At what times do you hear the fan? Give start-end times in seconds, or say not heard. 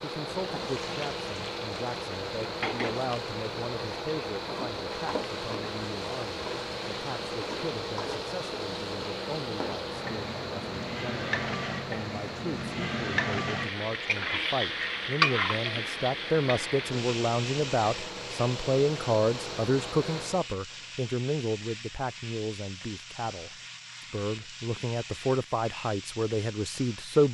0.0-20.5.